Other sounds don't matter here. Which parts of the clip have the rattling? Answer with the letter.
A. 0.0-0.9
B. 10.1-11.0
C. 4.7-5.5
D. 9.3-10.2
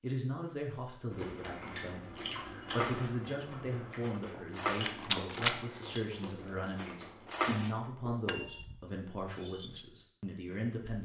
C.